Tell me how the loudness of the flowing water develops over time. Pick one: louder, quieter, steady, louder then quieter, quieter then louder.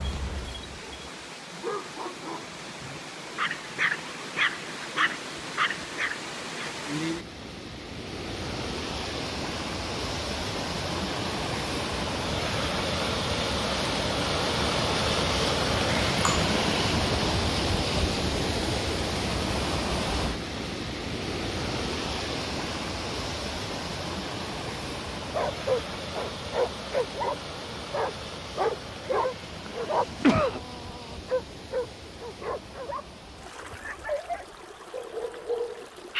louder then quieter.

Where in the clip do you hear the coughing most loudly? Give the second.
30 s.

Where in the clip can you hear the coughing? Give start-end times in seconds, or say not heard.
15.9-16.5, 29.6-30.6.